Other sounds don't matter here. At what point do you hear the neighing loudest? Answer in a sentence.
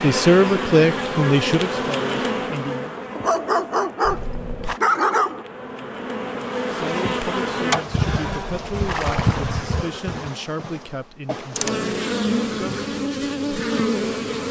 The loudest moment of the neighing is at 9 seconds.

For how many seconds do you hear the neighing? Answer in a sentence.
The neighing can be heard for 2 seconds in total.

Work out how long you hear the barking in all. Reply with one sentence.
The barking can be heard for 2 seconds in total.